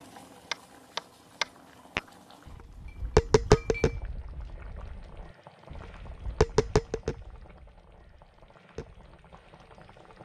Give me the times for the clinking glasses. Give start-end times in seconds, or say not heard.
2.6-4.0.